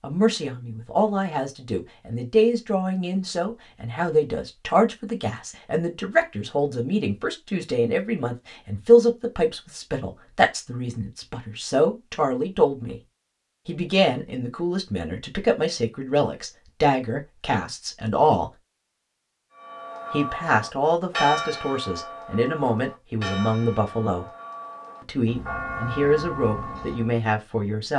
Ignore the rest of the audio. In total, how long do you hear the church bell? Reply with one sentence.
The church bell can be heard for 8 seconds in total.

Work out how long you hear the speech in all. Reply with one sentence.
The speech can be heard for 25 seconds in total.